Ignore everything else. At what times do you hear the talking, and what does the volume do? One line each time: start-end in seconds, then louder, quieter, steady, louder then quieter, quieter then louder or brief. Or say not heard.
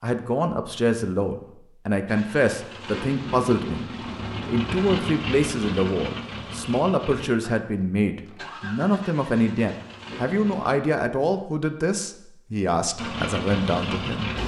0.0-14.3 steady.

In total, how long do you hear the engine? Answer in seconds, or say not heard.
10 s.